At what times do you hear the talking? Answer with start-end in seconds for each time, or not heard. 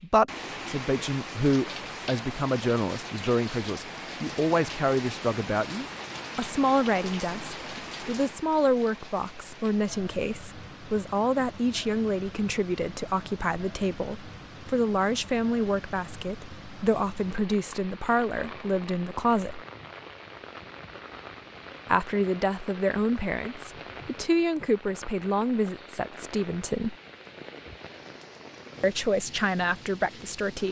0.0-19.6, 21.9-26.9, 28.8-30.6.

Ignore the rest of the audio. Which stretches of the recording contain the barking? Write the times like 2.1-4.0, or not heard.
not heard.